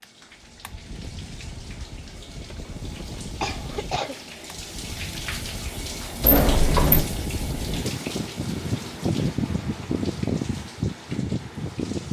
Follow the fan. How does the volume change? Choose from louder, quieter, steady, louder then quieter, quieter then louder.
louder.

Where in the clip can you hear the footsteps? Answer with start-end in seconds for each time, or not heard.
not heard.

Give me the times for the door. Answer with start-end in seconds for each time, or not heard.
6.2-7.0.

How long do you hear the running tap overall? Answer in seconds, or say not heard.
12 s.